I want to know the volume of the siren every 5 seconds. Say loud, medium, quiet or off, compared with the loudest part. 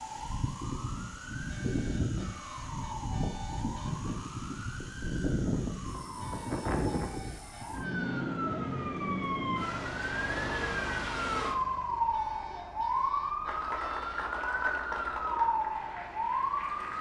medium, loud, loud, loud.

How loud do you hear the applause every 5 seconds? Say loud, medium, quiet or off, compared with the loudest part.
off, off, loud, medium.